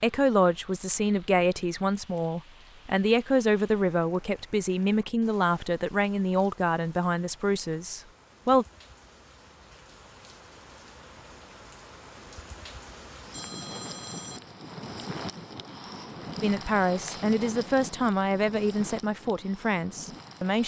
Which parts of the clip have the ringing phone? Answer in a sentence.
You can hear the ringing phone from 13.3 to 14.4 s.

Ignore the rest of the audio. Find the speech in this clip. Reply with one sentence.
You can hear the speech from 0.0 to 8.7 s and from 16.4 to 20.6 s.